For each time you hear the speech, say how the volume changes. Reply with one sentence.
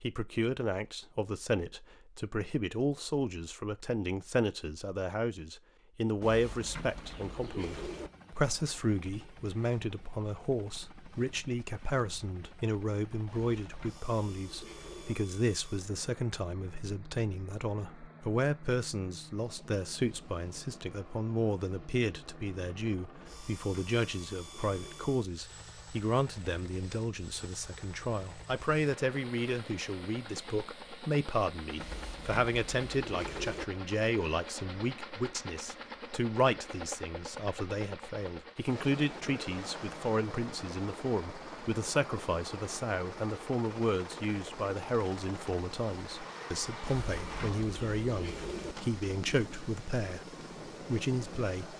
The speech can be heard from 0.0 to 50.2 s, at a steady volume; and briefly from 50.9 to 51.7 s.